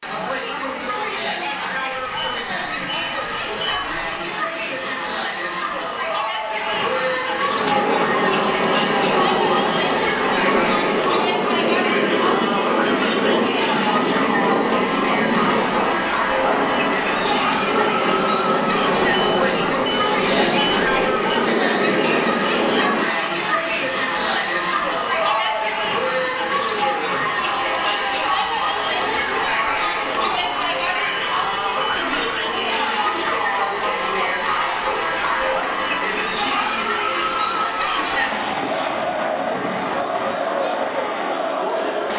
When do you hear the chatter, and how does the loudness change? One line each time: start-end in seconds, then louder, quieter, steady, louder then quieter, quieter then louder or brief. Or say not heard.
0.0-42.1 steady.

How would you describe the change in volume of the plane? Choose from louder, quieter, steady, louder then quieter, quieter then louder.
steady.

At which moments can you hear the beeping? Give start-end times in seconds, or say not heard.
1.9-4.2, 18.9-21.4, 30.1-32.6.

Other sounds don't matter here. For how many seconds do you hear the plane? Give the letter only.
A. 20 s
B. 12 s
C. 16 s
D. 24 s
C.